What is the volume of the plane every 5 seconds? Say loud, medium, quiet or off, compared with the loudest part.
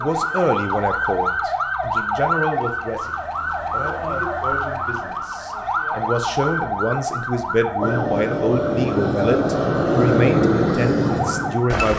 off, loud, loud.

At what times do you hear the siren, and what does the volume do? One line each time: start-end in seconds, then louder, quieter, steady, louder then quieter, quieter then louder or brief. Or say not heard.
0.0-11.8 quieter.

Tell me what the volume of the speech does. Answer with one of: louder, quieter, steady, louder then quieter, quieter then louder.
quieter then louder.